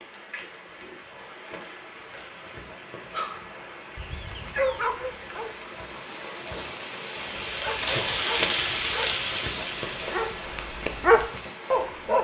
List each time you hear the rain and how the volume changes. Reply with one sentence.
The rain can be heard from 0.0 to 12.1 s, getting louder then quieter.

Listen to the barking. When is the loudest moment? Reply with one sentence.
The volume of the barking peaks at 11 seconds.